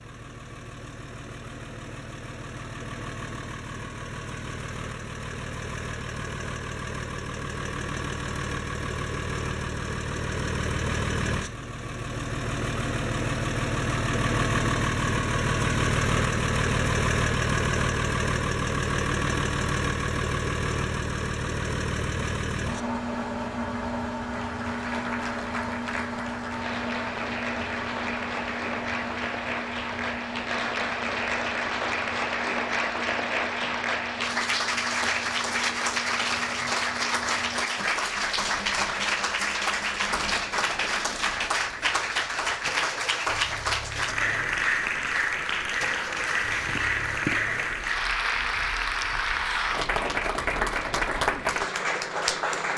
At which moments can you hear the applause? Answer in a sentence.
You can hear the applause from 24.3 to 52.7 s.